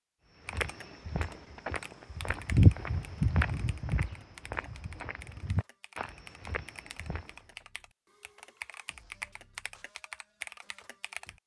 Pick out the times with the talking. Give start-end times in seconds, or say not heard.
not heard.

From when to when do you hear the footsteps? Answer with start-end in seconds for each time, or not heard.
0.5-7.3.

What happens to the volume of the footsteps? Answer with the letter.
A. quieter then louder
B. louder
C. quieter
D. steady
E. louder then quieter
E.